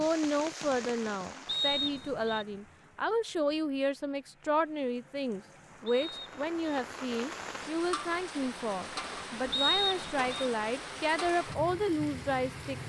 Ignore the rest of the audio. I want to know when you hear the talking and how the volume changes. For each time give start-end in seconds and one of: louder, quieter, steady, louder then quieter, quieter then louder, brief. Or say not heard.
0.0-12.8 steady.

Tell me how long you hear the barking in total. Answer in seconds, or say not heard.
not heard.